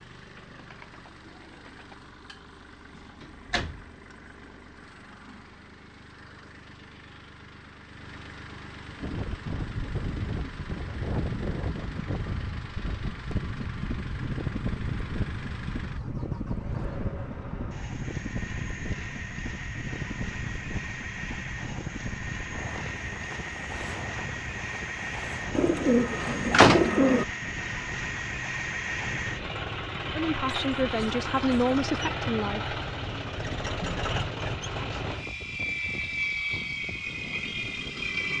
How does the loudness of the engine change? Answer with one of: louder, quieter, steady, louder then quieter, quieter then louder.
louder.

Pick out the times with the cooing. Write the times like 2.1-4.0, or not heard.
0.3-2.0, 25.6-27.2.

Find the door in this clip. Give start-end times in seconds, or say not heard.
3.2-3.9, 26.2-26.9.